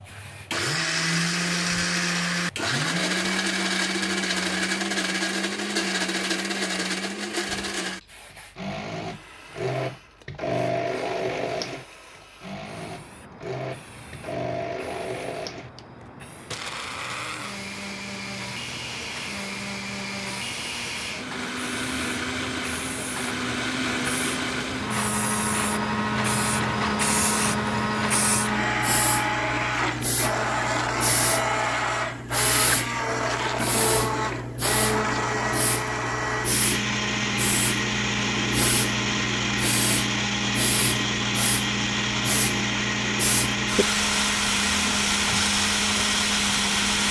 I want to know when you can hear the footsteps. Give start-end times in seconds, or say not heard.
not heard.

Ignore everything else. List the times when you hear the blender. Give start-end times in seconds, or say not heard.
0.0-47.0.